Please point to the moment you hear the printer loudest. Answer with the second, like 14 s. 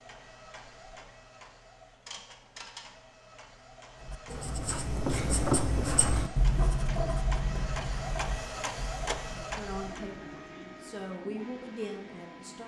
9 s.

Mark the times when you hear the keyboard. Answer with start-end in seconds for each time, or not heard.
not heard.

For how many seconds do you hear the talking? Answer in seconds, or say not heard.
3 s.